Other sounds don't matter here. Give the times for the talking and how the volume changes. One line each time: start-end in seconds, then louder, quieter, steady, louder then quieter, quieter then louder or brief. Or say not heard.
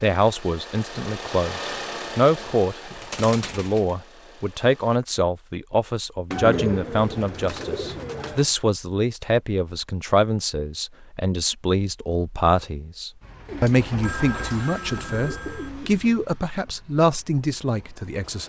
0.0-18.4 steady.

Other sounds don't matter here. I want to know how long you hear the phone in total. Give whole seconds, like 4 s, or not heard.
2 s.